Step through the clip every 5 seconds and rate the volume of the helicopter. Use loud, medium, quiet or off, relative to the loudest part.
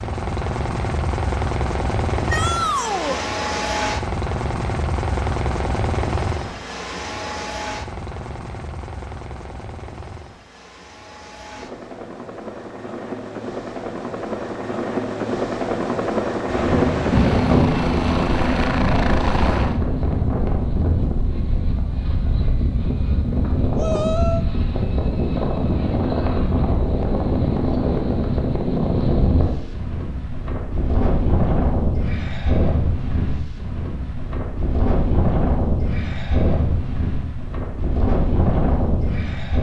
loud, medium, medium, loud, off, off, off, off.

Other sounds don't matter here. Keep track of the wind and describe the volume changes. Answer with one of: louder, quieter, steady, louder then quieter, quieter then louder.
steady.